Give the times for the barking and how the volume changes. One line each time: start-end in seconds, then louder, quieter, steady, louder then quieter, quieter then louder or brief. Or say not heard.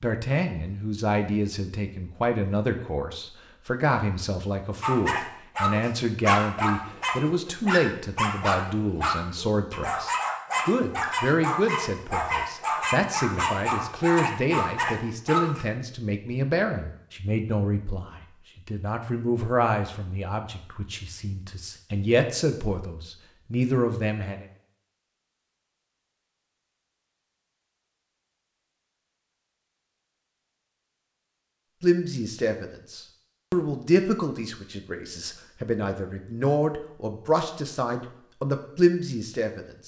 4.8-15.7 steady.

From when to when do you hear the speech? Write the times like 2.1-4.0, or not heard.
0.0-24.4, 31.8-39.8.